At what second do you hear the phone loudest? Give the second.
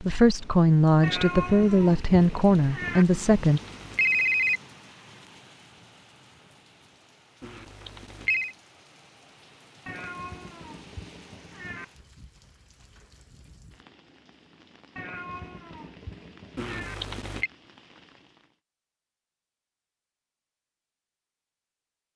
4 s.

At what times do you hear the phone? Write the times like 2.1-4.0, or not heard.
3.1-4.6, 7.4-8.6, 16.6-17.5.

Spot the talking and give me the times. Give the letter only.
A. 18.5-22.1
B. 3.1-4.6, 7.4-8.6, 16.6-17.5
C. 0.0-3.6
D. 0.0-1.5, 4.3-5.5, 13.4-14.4
C.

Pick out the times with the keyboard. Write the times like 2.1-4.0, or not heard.
not heard.